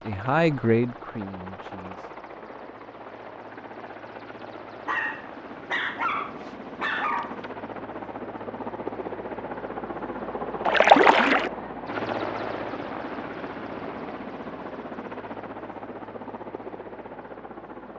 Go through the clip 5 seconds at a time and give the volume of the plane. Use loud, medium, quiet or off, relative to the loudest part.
medium, loud, loud, medium.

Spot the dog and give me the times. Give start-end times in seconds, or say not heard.
4.8-7.5.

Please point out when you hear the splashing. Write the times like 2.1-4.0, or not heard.
10.7-11.5.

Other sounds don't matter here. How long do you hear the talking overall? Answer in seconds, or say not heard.
2 s.